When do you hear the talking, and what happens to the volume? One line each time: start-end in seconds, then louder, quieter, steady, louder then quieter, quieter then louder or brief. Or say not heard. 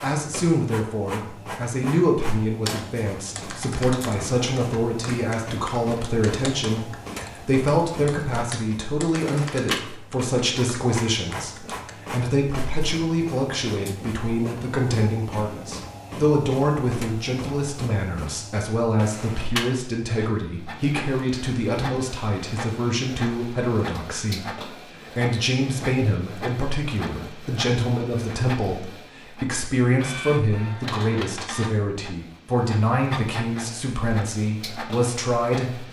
0.0-35.8 steady.